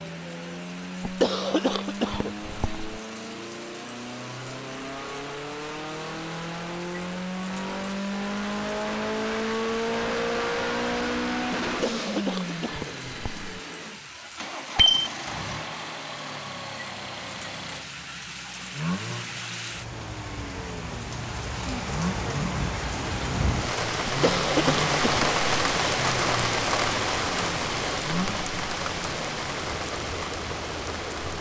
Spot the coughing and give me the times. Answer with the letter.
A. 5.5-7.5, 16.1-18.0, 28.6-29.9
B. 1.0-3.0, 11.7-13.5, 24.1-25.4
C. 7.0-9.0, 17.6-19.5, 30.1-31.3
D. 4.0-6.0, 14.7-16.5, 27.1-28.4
B.